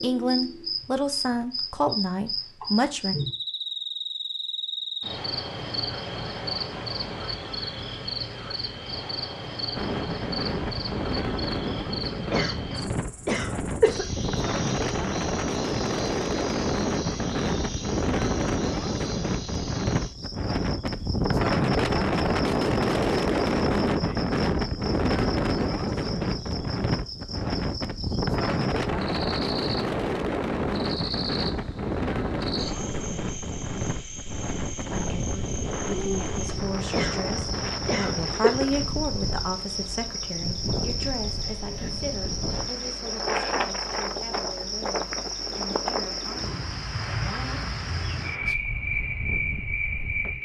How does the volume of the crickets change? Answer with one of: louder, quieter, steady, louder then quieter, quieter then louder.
quieter then louder.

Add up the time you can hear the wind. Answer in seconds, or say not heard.
41 s.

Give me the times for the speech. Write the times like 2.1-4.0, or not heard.
0.0-3.1, 34.9-47.7.